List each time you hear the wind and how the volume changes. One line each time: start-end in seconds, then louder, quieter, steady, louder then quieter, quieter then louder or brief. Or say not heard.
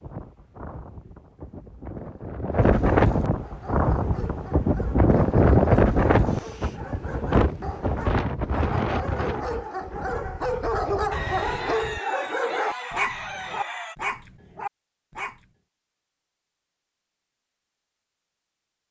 0.0-12.0 louder then quieter.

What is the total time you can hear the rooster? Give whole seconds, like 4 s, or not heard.
3 s.